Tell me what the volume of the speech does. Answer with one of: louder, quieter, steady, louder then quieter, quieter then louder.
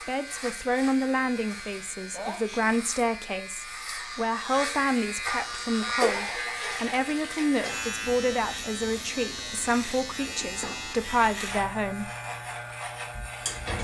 steady.